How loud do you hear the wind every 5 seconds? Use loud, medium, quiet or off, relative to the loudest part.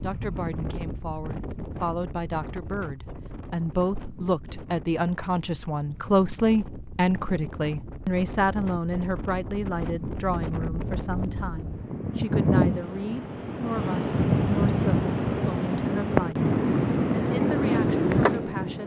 quiet, quiet, loud, loud.